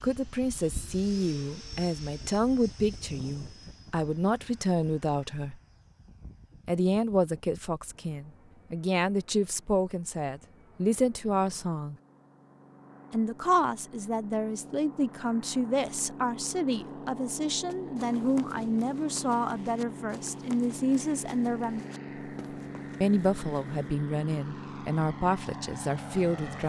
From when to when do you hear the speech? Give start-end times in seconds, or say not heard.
0.0-5.5, 6.7-11.9, 13.1-21.9, 23.0-26.6.